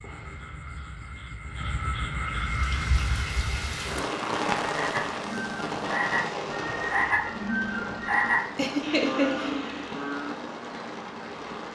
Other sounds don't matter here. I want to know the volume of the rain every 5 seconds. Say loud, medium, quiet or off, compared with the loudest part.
loud, loud, medium.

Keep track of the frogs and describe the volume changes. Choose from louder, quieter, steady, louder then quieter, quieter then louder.
louder.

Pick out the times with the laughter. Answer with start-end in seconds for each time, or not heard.
8.6-9.6.